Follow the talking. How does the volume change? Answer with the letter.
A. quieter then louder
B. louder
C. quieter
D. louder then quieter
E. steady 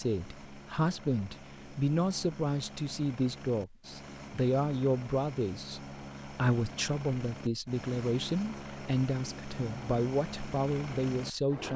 E.